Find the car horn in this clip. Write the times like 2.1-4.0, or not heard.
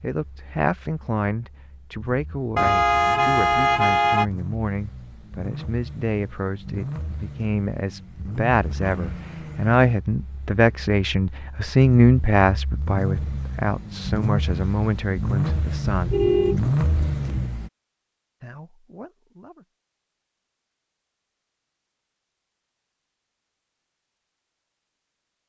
2.5-4.2, 15.9-17.5.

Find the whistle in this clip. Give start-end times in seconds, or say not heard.
not heard.